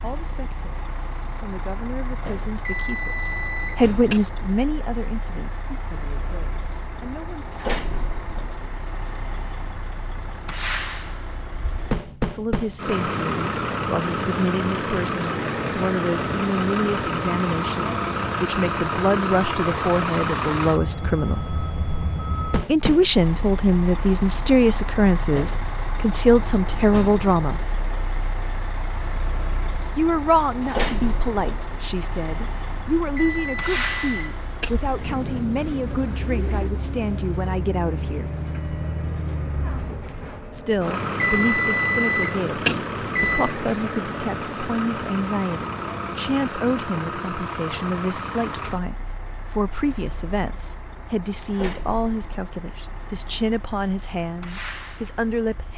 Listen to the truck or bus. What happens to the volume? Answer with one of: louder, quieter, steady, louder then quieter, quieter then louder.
louder then quieter.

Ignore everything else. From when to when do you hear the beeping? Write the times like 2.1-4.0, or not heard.
2.6-4.2, 33.1-34.8, 41.2-43.5.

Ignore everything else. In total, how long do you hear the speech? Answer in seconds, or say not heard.
45 s.